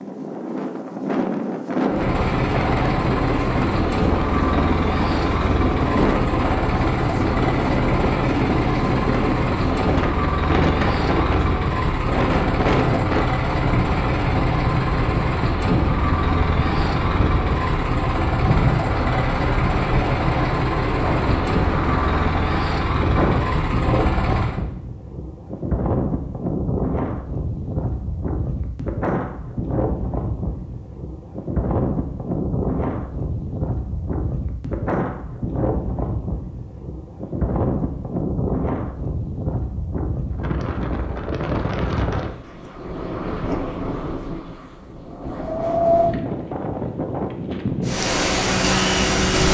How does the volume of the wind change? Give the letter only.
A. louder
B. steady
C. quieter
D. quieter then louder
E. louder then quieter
B.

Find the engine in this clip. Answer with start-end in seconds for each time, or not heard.
1.9-24.6, 47.8-49.4.